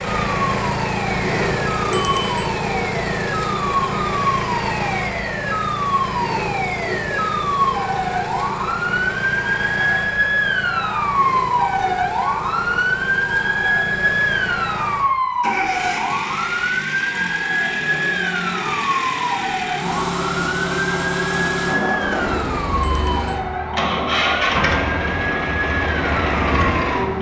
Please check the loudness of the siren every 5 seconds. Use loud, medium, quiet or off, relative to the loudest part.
medium, loud, loud, loud, medium, medium.